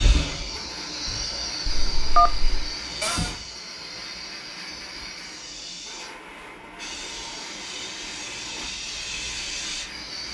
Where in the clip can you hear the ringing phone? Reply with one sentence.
The ringing phone can be heard from 1.6 to 2.6 s.